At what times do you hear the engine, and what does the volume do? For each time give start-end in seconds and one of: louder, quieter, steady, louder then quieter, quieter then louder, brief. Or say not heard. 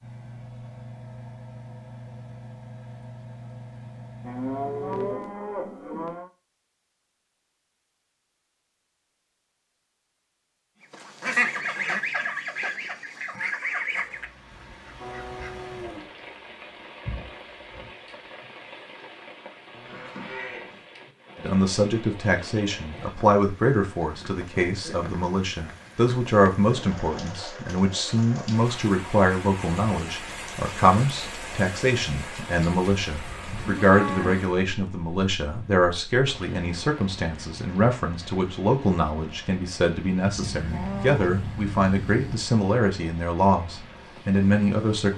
0.0-5.2 steady.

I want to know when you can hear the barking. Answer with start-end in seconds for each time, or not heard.
not heard.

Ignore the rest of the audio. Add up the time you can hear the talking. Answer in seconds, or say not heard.
24 s.